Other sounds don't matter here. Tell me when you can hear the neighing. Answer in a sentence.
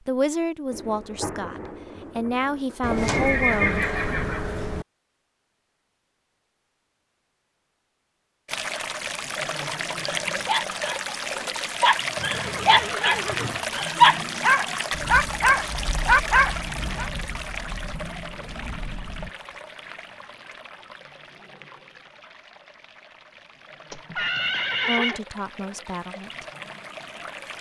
You can hear the neighing from 2.8 to 4.8 s, from 12.2 to 13.6 s and from 23.9 to 25.2 s.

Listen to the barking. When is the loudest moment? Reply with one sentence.
The volume of the barking peaks at 14 seconds.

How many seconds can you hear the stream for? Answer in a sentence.
You can hear the stream for 19 seconds altogether.